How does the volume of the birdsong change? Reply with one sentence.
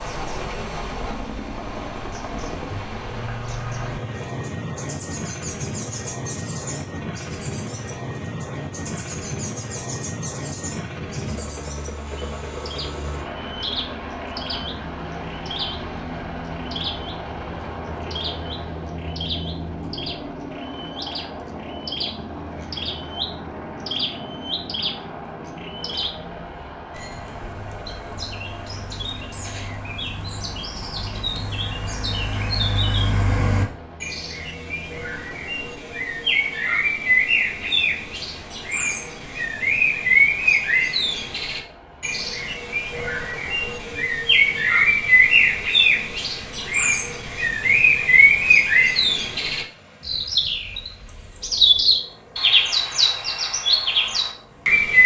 The volume of the birdsong goes up.